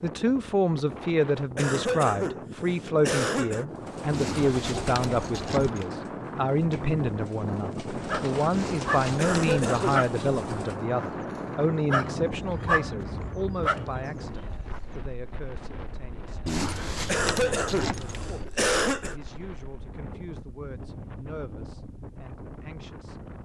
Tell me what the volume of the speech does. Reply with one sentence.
The loudness of the speech goes down.